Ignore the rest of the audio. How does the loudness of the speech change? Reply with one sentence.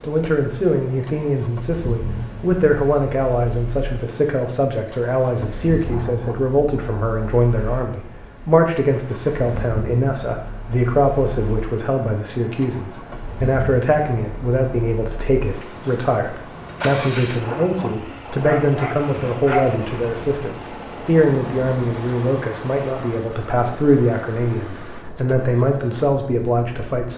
The loudness of the speech stays about the same.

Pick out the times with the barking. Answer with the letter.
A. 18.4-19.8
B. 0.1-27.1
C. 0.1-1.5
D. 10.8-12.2
A.